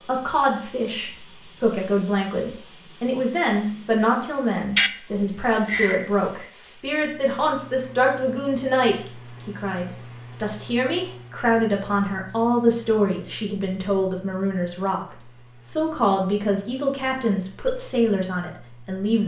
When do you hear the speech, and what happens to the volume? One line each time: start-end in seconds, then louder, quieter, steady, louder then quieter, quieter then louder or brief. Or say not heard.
0.1-19.2 steady.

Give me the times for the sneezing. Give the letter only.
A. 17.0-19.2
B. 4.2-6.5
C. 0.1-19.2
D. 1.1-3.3
B.